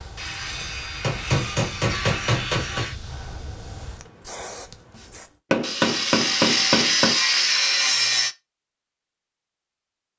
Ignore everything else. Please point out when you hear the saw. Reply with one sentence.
The saw can be heard from 0.1 to 3.0 s and from 5.6 to 8.3 s.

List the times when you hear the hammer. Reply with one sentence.
The hammer can be heard from 0.6 to 2.9 s and from 5.5 to 7.2 s.